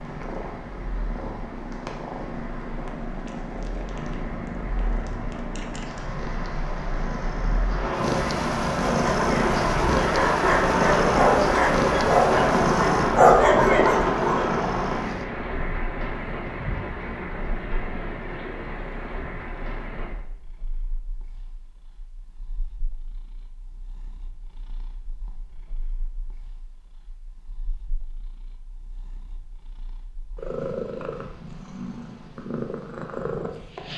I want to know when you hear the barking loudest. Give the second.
13 s.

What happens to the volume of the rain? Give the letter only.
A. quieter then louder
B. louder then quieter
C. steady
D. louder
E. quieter
B.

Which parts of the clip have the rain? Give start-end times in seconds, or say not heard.
0.0-20.1.